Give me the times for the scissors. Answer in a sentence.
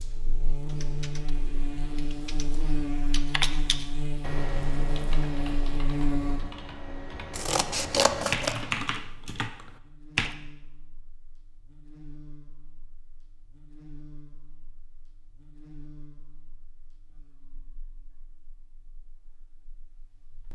The scissors can be heard from 7.3 to 8.6 s.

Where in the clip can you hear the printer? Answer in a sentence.
The printer can't be heard in this clip.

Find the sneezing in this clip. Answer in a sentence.
You can't hear the sneezing here.